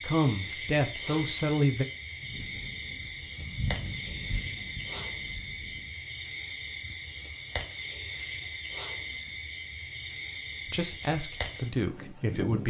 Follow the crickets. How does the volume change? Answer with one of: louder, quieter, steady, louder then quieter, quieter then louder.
steady.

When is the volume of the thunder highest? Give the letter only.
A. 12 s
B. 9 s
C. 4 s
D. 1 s
C.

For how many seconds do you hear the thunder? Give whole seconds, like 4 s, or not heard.
4 s.